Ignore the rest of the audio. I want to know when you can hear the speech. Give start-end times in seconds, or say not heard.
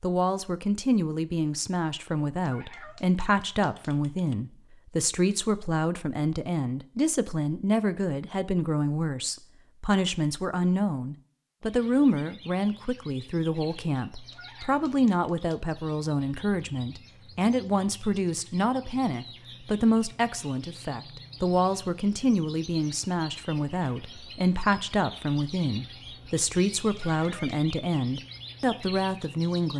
0.0-29.7.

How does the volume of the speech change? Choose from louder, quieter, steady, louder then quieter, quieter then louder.
steady.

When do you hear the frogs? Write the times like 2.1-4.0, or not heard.
not heard.